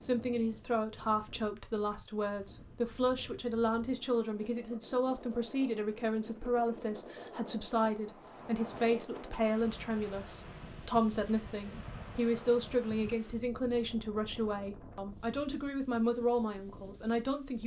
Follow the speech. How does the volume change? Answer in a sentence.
The volume of the speech stays about the same.